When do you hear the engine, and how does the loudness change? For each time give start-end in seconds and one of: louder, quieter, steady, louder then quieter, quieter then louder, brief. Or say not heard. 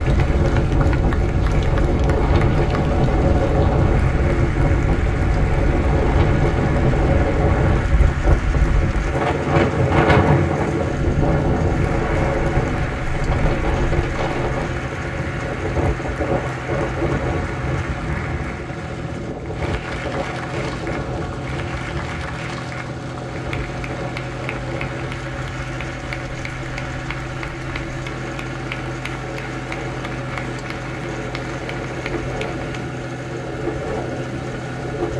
0.0-35.1 steady.